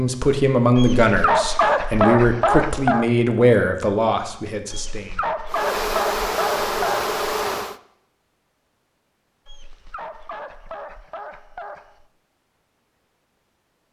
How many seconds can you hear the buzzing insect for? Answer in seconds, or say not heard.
2 s.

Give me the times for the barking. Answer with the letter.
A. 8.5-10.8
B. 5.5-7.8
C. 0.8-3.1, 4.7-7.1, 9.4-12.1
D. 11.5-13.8
C.